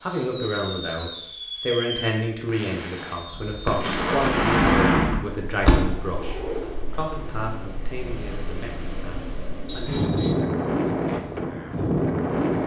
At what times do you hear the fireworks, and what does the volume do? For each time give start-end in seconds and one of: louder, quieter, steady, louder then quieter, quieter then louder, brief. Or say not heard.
0.0-6.0 quieter then louder.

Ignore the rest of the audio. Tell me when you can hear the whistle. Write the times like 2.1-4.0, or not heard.
3.0-3.8, 9.7-10.5.